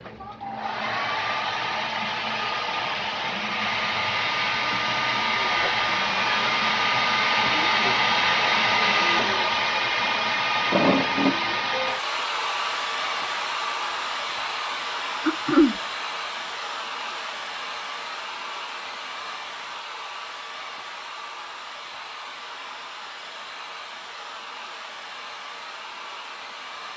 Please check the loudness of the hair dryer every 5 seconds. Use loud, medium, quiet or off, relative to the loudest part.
medium, loud, loud, medium, quiet, quiet.